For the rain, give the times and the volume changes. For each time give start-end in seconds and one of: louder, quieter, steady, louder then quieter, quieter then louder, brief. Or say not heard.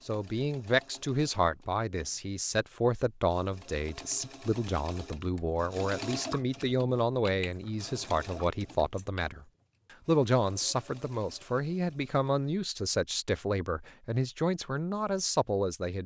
not heard.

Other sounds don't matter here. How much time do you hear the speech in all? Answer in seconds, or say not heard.
16 s.